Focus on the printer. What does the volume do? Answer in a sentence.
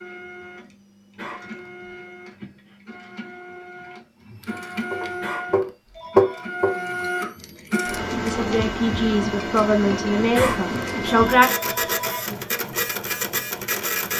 The loudness of the printer goes up.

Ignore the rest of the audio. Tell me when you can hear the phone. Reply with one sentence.
The phone can be heard from 1.1 to 1.9 s, from 5.2 to 6.5 s and from 10.3 to 12.2 s.